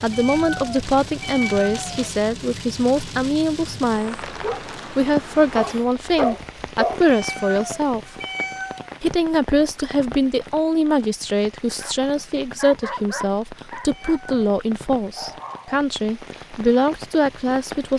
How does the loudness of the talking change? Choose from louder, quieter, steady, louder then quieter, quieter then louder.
steady.